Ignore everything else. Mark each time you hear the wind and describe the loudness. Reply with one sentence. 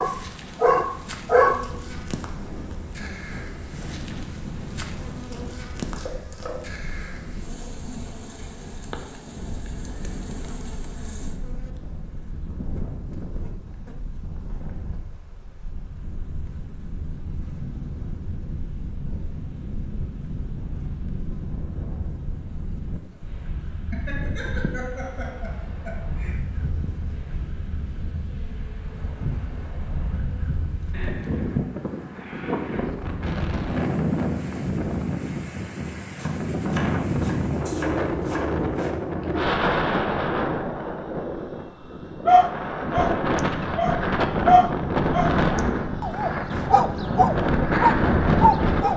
You can hear the wind from 0.0 to 48.9 s, getting louder.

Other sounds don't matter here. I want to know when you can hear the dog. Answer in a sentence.
The dog can be heard from 0.0 to 1.6 s and from 42.2 to 48.9 s.